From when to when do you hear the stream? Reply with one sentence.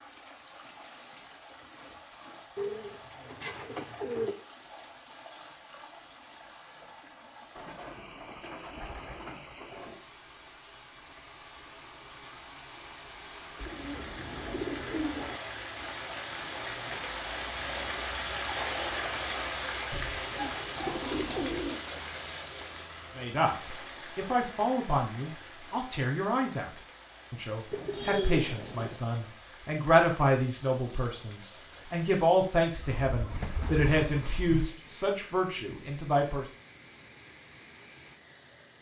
The stream can be heard from 0.0 to 38.7 s.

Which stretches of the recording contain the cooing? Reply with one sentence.
The cooing can be heard from 2.5 to 4.3 s, from 7.5 to 10.0 s, from 13.6 to 15.4 s, from 19.9 to 21.9 s, from 27.7 to 29.0 s and from 32.7 to 34.7 s.